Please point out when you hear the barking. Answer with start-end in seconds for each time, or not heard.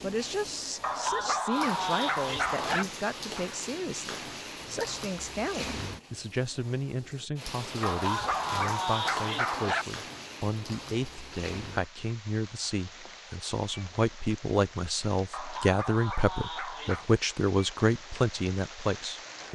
0.8-2.9, 7.8-9.8, 15.3-17.1.